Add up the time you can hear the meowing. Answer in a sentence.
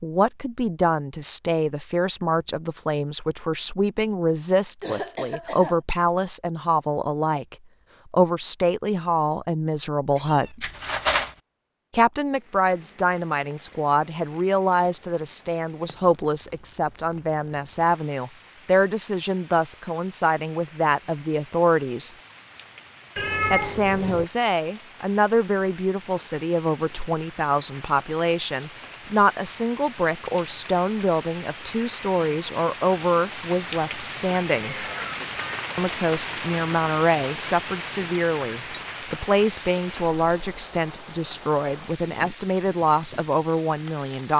You can hear the meowing for 3 seconds altogether.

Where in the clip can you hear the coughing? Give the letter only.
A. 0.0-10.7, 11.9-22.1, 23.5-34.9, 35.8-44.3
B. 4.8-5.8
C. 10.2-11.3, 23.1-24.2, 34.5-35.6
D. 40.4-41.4
B.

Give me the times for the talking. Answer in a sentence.
The talking can be heard from 0.0 to 10.7 s, from 11.9 to 22.1 s, from 23.5 to 34.9 s and from 35.8 to 44.3 s.